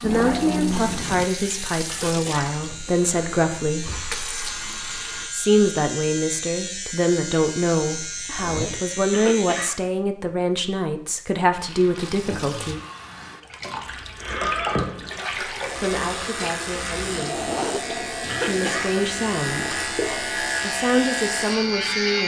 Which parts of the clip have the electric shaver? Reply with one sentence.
The electric shaver can be heard from 0.0 to 9.8 s and from 13.8 to 22.2 s.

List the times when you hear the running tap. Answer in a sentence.
You can hear the running tap from 0.0 to 5.3 s and from 11.6 to 22.2 s.